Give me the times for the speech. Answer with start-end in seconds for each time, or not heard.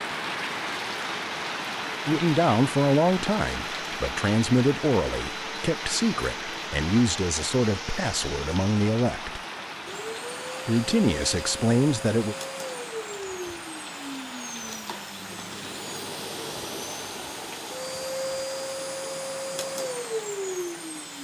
2.0-9.4, 10.7-12.3.